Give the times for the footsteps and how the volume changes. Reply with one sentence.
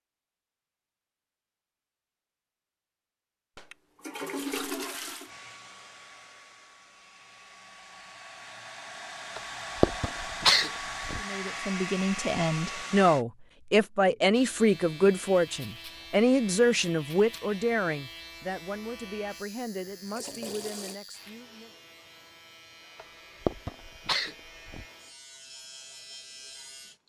The footsteps can't be heard in this clip.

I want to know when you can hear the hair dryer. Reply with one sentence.
The hair dryer can be heard from 5.2 to 13.2 s.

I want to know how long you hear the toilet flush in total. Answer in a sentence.
The toilet flush can be heard for 3 seconds in total.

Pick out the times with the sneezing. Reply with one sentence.
You can hear the sneezing from 9.3 to 11.2 s and from 22.9 to 24.9 s.